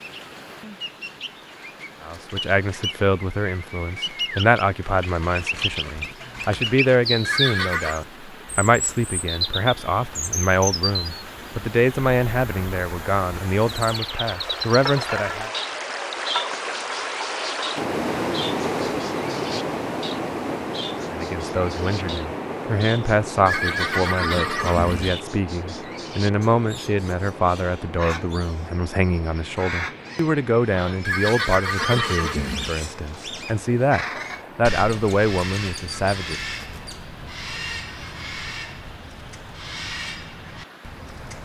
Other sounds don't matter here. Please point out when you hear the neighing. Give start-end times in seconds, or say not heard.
7.2-8.0, 23.4-25.2, 31.1-32.8.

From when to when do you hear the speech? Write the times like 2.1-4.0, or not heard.
2.0-15.5, 21.1-36.4.